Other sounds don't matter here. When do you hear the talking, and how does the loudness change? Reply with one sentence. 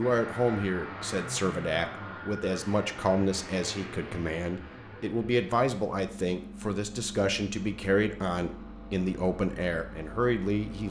You can hear the talking from 0.0 to 10.8 s, at a steady volume.